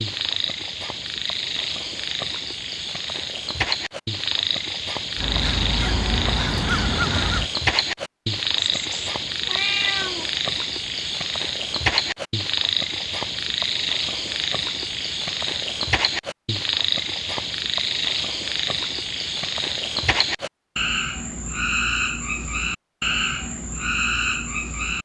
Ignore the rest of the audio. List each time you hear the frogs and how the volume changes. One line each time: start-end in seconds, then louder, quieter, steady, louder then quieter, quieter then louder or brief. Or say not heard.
0.0-25.0 steady.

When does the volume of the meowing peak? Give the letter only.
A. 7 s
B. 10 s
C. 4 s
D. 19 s
B.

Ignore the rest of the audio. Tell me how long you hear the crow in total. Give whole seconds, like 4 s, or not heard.
2 s.